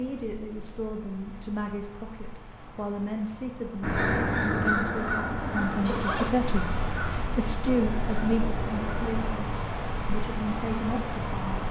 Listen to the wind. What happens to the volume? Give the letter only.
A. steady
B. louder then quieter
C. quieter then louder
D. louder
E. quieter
D.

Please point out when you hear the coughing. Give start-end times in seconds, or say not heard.
not heard.